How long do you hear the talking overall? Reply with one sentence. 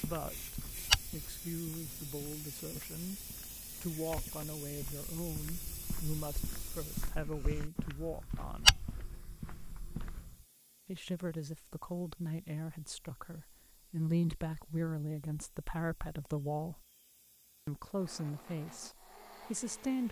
The talking can be heard for 16 seconds in total.